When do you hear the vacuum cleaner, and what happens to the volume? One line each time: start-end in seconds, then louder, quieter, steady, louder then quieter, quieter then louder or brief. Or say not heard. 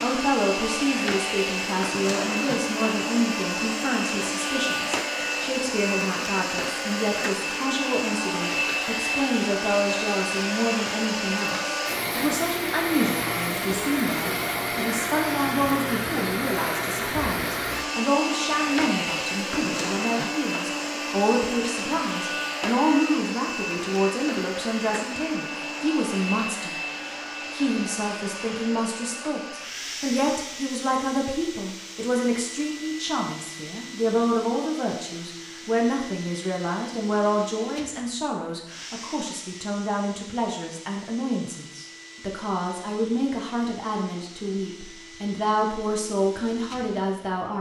0.0-47.5 quieter.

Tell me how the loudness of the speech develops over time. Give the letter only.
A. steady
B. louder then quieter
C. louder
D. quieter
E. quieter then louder
A.